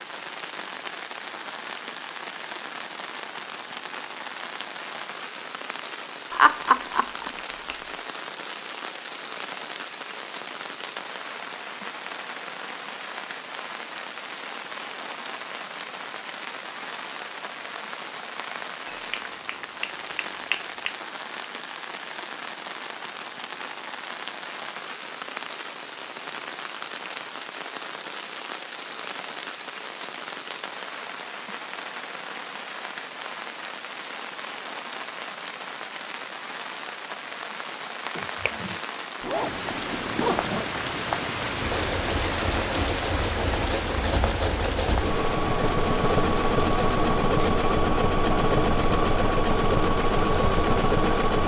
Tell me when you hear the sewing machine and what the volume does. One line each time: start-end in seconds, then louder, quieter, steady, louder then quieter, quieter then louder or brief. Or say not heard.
41.5-51.4 louder.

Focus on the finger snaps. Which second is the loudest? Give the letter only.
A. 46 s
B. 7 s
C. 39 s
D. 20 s
B.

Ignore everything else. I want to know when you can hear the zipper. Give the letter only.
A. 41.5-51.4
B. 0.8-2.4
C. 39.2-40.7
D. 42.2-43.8
C.